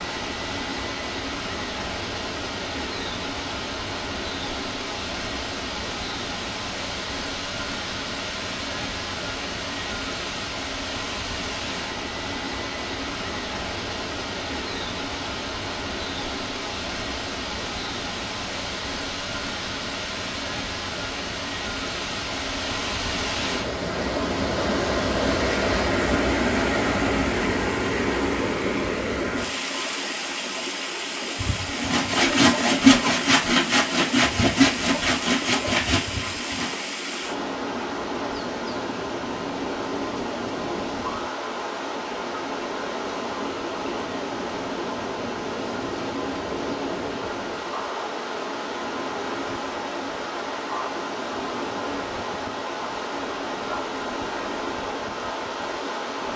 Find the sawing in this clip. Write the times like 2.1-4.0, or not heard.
31.4-36.7.